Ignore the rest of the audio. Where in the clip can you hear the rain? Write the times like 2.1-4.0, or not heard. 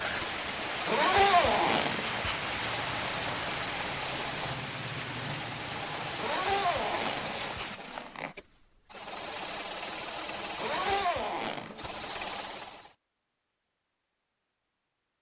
0.0-7.8.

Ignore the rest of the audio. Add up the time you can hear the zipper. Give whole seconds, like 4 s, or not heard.
5 s.